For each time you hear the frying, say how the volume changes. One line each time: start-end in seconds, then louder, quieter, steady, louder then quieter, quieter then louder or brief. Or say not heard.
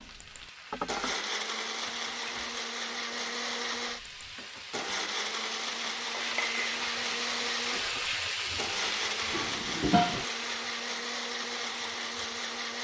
0.0-12.8 louder then quieter.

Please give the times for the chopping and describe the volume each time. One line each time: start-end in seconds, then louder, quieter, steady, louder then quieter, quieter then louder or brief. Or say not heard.
not heard.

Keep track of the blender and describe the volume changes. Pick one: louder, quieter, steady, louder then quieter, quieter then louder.
steady.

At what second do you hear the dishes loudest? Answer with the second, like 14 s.
10 s.